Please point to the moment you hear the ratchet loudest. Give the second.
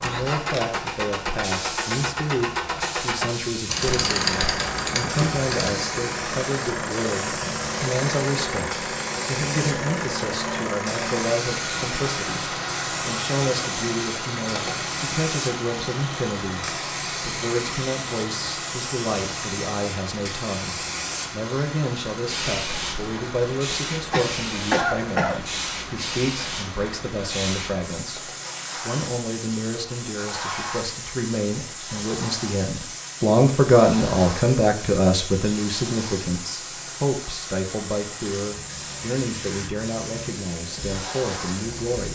4 s.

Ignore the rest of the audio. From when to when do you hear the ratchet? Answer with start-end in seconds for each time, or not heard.
3.6-5.7.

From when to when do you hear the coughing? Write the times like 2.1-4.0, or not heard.
24.1-25.4.